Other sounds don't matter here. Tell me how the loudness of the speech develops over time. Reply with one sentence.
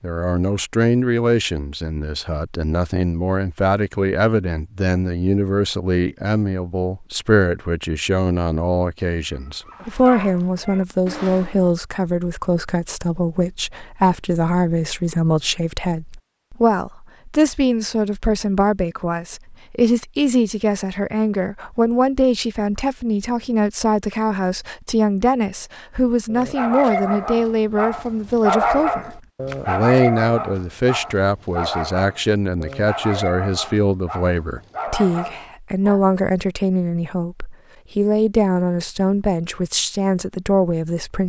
The volume of the speech stays about the same.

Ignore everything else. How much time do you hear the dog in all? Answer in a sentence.
You can hear the dog for 12 seconds altogether.